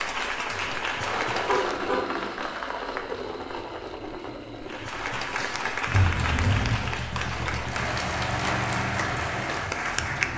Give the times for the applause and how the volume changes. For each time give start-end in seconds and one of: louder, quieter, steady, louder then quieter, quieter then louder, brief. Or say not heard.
0.0-1.9 brief
4.6-10.3 steady.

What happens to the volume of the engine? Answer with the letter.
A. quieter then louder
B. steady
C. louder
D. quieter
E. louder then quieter
A.